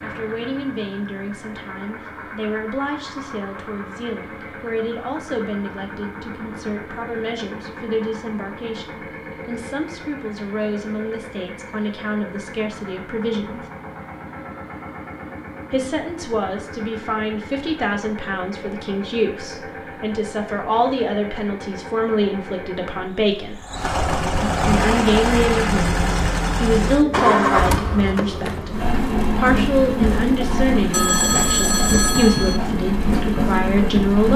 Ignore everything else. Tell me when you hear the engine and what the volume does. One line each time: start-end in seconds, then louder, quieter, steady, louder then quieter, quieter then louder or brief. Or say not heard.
0.0-34.3 louder.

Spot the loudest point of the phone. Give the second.
31 s.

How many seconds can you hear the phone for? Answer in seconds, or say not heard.
2 s.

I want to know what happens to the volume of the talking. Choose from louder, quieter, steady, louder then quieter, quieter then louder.
louder.